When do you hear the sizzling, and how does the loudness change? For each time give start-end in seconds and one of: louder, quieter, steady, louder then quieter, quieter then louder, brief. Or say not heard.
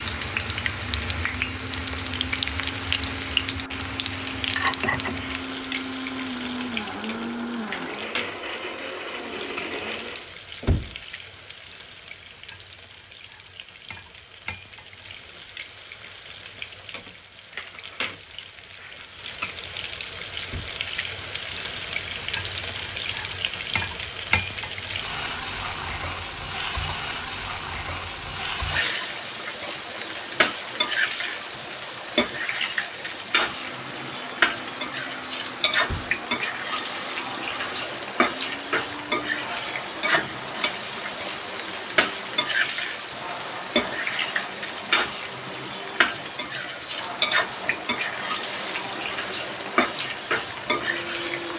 0.0-51.5 quieter then louder.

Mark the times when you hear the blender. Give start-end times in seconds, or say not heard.
0.0-10.3, 33.4-51.5.